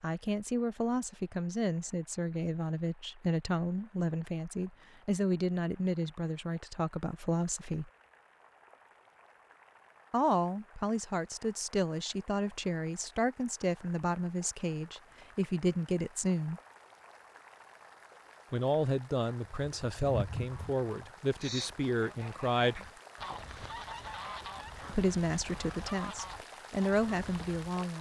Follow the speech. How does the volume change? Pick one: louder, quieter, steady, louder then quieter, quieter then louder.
steady.